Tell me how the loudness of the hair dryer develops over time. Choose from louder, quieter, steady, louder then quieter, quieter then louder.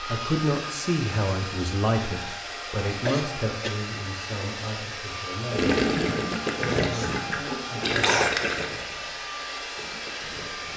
steady.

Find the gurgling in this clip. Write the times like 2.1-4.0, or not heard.
5.5-10.7.